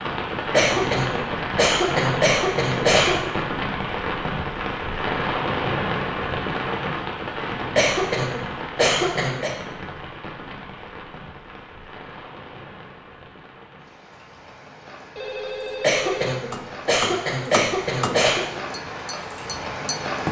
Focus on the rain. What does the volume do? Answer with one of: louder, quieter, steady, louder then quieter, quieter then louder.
quieter then louder.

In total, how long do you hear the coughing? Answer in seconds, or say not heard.
7 s.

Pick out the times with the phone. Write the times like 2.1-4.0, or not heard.
15.2-16.4.